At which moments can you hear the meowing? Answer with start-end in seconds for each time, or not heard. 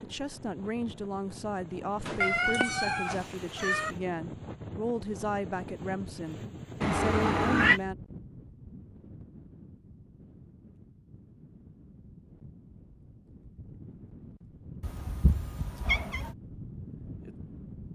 2.0-4.0, 6.8-7.8, 14.8-16.4.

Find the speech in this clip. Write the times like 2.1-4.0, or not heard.
0.0-8.0.